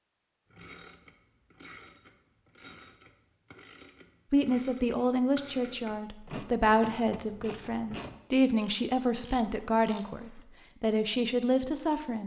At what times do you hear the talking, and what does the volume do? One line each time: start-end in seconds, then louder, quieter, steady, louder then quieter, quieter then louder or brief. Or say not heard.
4.3-12.2 steady.